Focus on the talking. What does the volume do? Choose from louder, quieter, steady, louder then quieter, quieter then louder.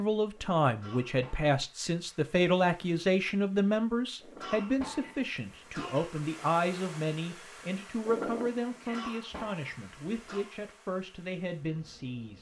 quieter.